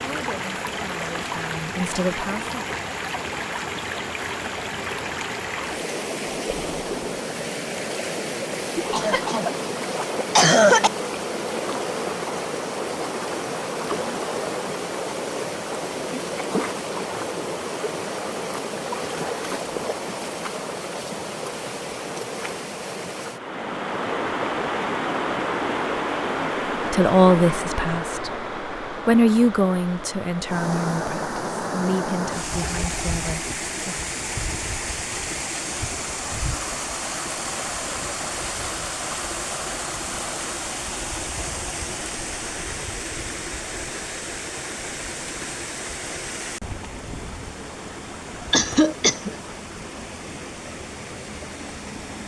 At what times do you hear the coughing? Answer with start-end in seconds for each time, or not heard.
8.9-10.9, 48.5-49.4.